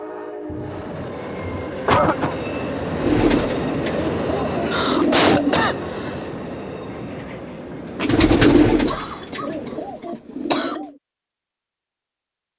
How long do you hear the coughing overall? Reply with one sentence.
The coughing can be heard for 6 seconds in total.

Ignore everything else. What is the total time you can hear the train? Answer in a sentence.
The train can be heard for 10 seconds in total.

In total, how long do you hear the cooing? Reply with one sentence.
You can hear the cooing for 6 seconds altogether.